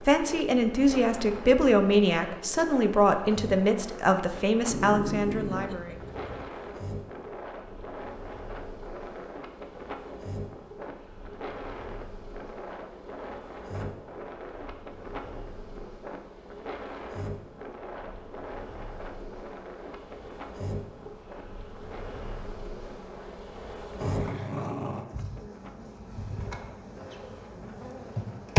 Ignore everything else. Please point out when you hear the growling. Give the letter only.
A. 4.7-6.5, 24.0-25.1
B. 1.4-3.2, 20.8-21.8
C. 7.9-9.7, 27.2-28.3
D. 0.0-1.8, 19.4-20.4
A.